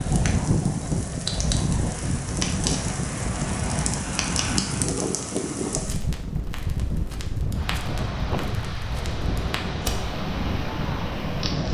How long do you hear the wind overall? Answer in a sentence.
You can hear the wind for 12 seconds altogether.